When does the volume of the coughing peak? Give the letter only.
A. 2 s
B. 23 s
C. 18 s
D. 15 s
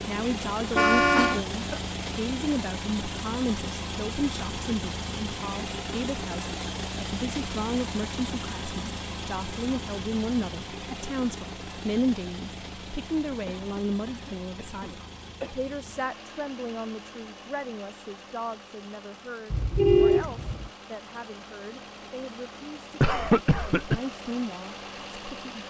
B.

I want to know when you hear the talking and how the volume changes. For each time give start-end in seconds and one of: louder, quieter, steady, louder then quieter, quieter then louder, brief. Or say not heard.
0.1-25.6 quieter.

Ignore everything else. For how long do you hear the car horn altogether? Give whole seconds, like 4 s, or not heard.
2 s.